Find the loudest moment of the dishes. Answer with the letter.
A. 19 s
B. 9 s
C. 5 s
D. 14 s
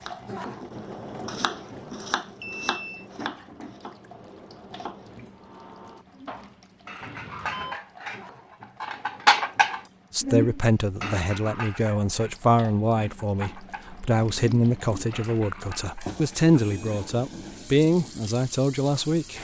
B.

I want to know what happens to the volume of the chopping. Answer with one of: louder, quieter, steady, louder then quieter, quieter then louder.
quieter.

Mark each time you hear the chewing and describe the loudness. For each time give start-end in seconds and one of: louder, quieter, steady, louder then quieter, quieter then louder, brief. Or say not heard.
not heard.